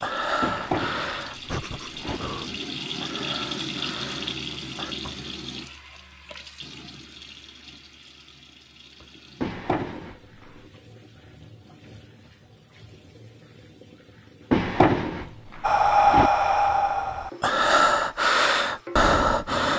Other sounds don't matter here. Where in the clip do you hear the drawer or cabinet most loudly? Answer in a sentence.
The loudest moment of the drawer or cabinet is at 15 seconds.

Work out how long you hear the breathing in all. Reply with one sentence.
The breathing can be heard for 9 seconds in total.